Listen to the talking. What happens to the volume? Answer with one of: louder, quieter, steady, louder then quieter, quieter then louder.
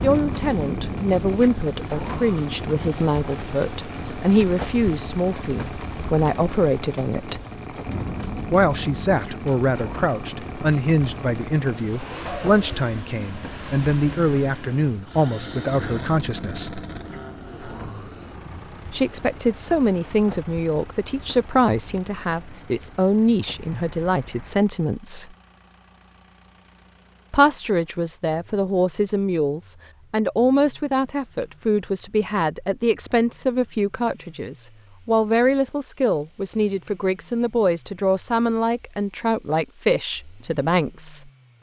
steady.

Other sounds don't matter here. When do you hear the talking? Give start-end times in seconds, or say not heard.
0.0-7.4, 8.5-16.9, 18.9-25.4, 27.3-41.3.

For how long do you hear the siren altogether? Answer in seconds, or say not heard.
not heard.